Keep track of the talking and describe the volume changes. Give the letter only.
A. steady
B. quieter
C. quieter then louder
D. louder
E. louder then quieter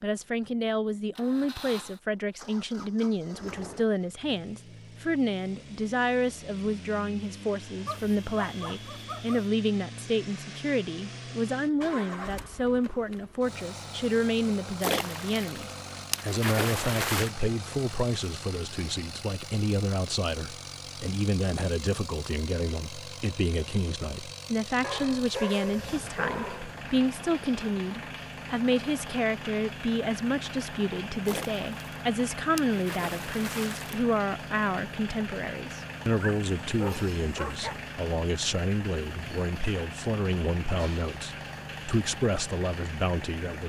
A.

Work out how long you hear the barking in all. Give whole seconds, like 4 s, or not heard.
5 s.